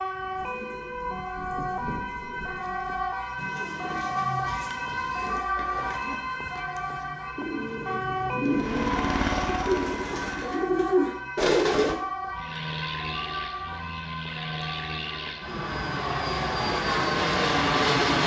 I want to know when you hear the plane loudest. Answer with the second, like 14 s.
18 s.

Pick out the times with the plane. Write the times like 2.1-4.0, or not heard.
8.4-10.7, 12.3-18.2.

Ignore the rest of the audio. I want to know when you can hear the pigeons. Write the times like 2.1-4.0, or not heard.
0.3-11.9.